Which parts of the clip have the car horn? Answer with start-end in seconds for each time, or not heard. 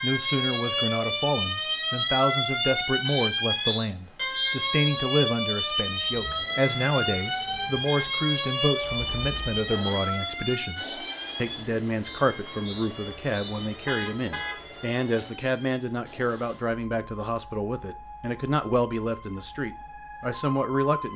3.0-3.8, 13.8-14.6.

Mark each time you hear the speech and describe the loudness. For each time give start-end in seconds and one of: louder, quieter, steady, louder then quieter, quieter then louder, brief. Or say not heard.
0.0-21.1 steady.